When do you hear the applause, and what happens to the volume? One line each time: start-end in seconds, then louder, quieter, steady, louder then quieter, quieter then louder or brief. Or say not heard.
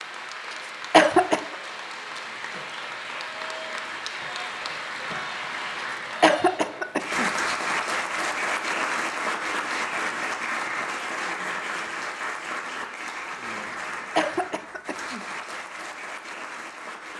0.0-17.1 louder then quieter.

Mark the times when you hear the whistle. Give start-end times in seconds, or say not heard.
not heard.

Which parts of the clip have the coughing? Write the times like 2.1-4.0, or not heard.
0.5-1.6, 6.2-7.3, 14.2-15.2.